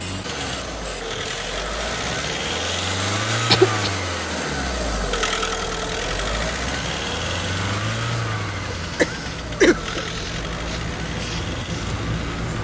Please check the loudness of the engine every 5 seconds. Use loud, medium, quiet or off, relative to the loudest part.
loud, loud, medium.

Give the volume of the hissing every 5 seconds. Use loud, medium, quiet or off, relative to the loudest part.
medium, medium, loud.